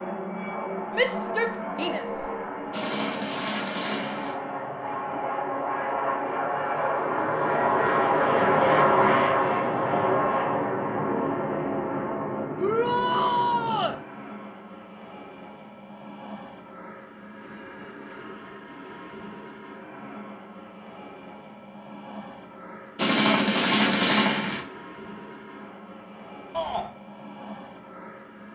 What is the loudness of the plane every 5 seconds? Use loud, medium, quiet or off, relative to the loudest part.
medium, loud, medium, quiet, quiet, quiet.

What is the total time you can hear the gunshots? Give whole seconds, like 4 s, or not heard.
3 s.